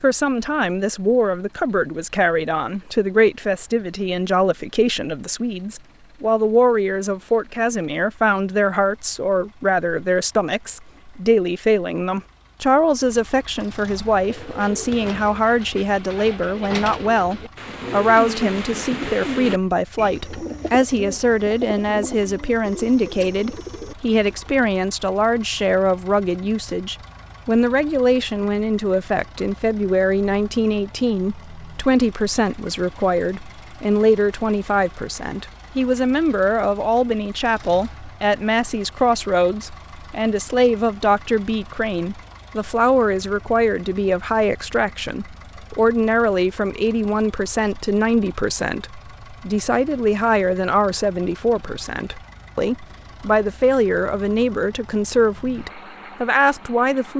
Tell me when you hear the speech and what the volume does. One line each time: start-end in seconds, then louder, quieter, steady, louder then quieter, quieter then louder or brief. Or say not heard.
0.0-57.1 steady.